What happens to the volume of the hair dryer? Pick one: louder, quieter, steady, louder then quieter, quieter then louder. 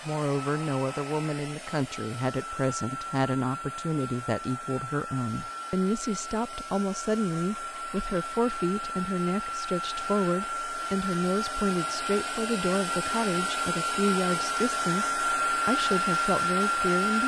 louder.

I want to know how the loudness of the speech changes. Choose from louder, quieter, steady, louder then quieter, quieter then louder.
steady.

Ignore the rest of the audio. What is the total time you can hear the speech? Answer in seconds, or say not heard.
17 s.